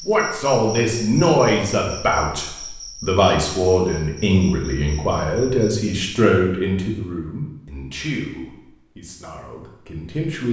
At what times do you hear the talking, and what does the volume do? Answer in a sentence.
You can hear the talking from 0.1 to 10.4 s, getting quieter.